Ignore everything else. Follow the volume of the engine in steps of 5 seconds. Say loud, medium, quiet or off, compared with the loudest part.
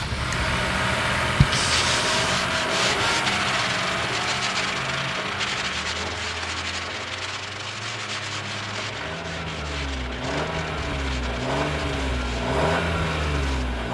loud, medium, loud.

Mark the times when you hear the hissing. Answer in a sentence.
The hissing can be heard from 0.0 to 2.4 s.